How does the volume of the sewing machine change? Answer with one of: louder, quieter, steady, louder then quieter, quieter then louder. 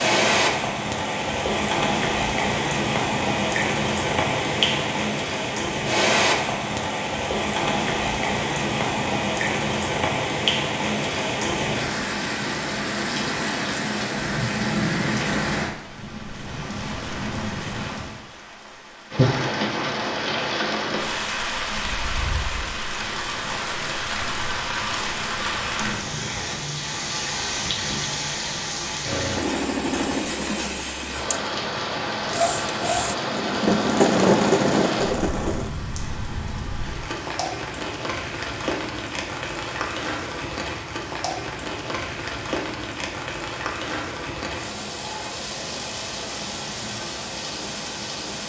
quieter then louder.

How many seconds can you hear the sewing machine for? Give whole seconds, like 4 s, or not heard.
7 s.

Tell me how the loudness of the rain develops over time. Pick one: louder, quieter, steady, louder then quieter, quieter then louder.
quieter.